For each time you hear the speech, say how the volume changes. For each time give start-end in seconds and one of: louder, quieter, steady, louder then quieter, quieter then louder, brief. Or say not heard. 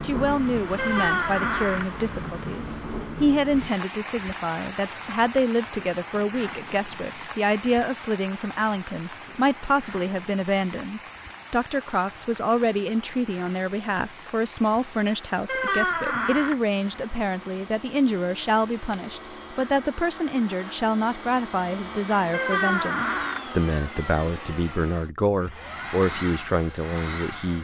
0.0-27.6 steady.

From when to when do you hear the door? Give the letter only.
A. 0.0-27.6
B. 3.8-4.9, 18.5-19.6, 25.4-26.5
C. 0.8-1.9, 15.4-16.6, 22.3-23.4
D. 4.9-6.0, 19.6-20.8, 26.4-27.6
C.